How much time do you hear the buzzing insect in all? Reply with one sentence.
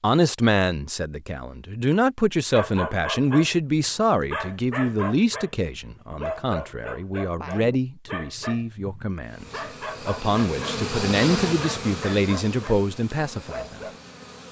You can hear the buzzing insect for 5 seconds altogether.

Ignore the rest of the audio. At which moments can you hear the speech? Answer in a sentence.
You can hear the speech from 0.0 to 13.8 s.